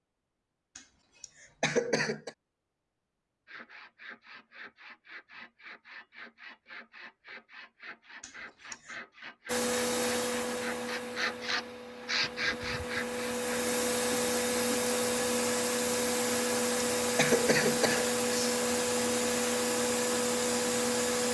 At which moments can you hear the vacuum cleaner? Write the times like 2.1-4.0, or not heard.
9.4-21.3.